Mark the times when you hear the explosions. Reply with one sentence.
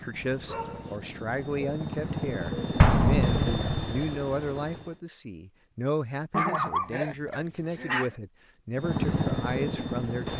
You can hear the explosions from 2.8 to 4.0 s.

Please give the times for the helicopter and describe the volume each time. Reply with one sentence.
The helicopter can be heard from 0.0 to 5.0 s, getting louder then quieter; and briefly from 8.8 to 10.3 s.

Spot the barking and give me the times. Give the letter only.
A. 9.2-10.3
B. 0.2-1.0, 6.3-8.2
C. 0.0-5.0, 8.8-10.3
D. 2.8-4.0
B.